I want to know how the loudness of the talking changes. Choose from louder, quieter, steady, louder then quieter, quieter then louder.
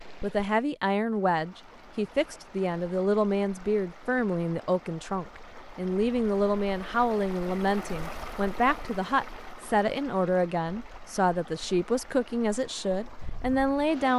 steady.